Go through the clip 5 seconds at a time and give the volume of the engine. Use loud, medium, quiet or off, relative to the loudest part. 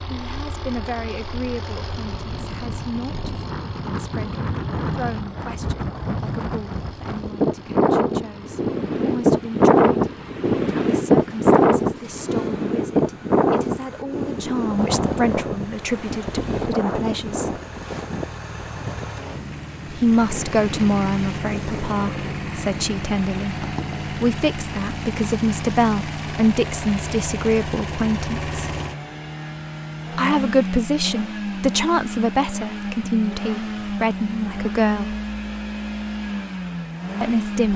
medium, quiet, quiet, medium, loud, loud, loud, loud.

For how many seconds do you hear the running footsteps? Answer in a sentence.
The running footsteps can't be heard in this clip.